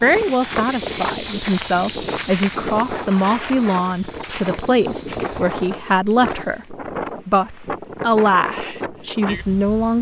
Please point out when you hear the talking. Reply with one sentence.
The talking can be heard from 0.0 to 9.9 s.